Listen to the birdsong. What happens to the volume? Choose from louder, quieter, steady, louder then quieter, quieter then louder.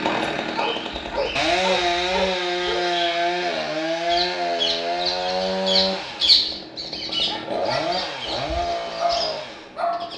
louder then quieter.